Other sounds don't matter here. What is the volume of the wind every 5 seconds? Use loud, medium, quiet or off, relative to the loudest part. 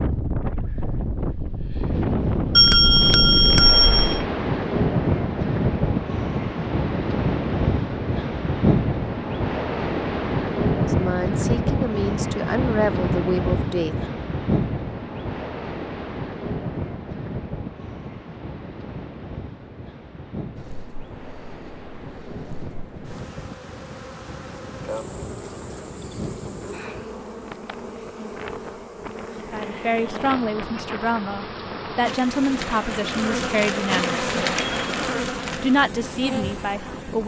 loud, loud, loud, medium, quiet, quiet, quiet, quiet.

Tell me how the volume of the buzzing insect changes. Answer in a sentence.
The loudness of the buzzing insect goes up.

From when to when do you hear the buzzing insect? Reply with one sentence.
You can hear the buzzing insect from 20.6 to 37.2 s.